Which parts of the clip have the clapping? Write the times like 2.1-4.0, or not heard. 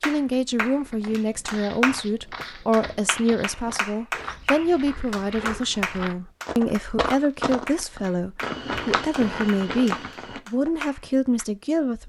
0.0-11.4.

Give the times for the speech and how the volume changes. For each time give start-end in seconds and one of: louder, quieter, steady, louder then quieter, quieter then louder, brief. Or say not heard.
0.0-12.0 steady.